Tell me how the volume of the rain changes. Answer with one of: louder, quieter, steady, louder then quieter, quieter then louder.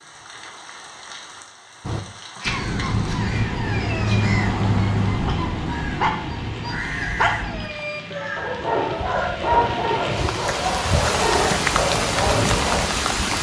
louder.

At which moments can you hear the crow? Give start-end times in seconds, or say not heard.
1.8-9.3.